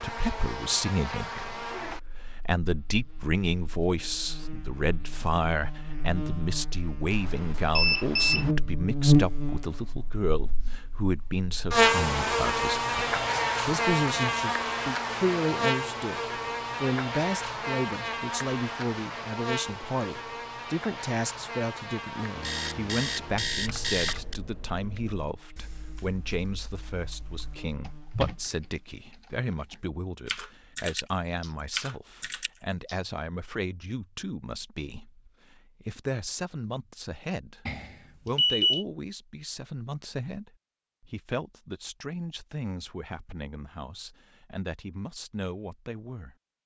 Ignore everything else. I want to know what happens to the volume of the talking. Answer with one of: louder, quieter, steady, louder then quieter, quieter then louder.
quieter.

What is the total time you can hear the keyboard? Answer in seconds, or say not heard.
10 s.